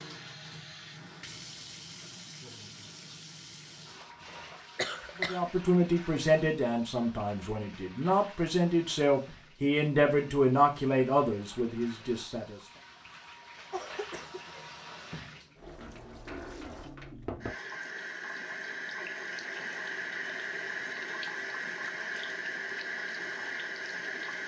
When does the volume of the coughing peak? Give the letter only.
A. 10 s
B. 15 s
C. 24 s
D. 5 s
D.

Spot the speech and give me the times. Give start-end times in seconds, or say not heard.
5.2-12.6.